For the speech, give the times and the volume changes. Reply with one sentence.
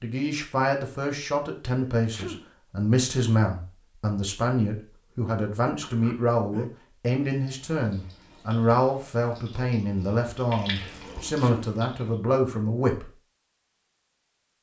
You can hear the speech from 0.0 to 13.1 s, at a steady volume.